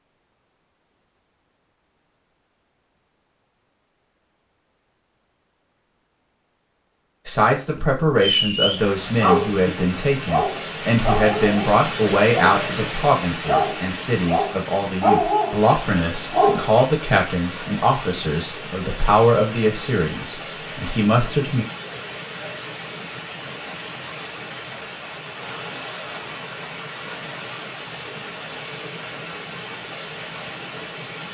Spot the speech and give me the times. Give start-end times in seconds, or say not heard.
7.2-21.6.